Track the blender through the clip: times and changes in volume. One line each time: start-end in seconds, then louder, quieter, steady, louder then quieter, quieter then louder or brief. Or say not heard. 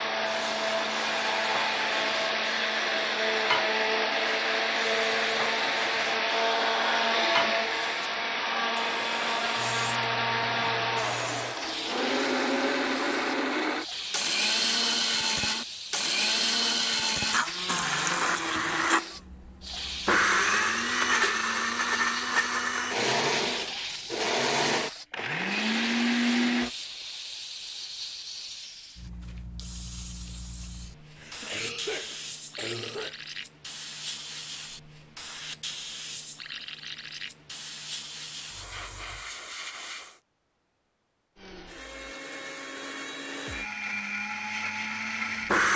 0.0-26.7 steady
41.4-45.7 louder.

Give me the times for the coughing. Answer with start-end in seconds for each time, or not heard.
31.1-33.1.